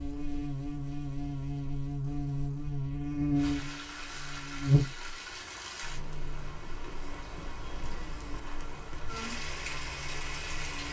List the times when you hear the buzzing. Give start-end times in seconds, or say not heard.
0.0-10.8.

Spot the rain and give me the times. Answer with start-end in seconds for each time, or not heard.
3.4-10.8.